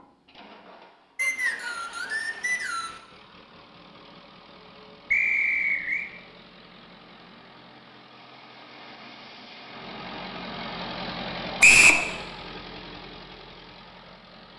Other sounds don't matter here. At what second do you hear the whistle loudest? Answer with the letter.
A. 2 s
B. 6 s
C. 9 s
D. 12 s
D.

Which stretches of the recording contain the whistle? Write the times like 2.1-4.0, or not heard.
1.1-3.0, 5.1-6.0, 11.6-12.1.